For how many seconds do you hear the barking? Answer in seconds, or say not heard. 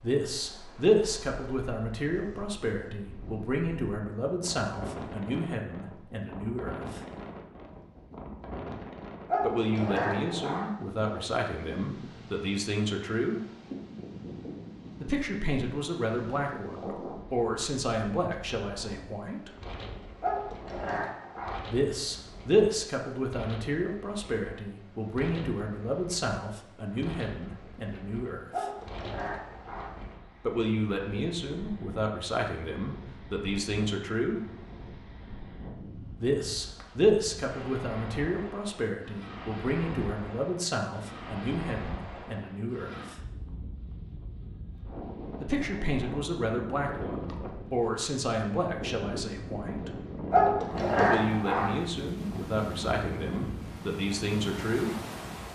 6 s.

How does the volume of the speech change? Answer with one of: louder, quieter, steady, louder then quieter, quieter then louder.
steady.